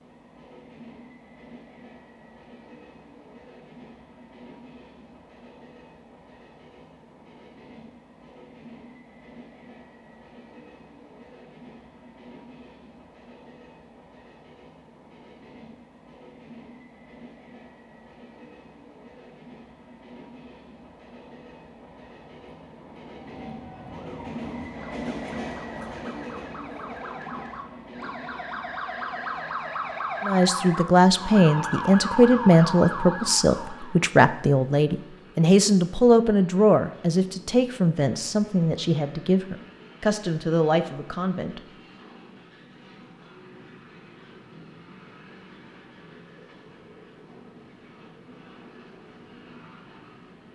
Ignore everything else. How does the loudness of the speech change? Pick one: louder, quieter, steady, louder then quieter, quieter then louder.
quieter.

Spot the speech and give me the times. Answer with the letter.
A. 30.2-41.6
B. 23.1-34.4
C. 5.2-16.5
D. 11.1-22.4
A.